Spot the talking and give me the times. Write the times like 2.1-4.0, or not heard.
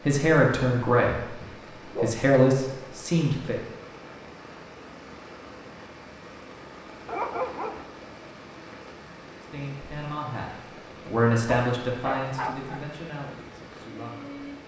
0.0-3.5, 9.4-14.4.